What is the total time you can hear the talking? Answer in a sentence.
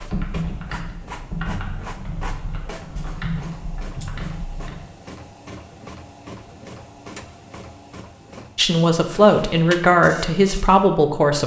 You can hear the talking for 3 seconds altogether.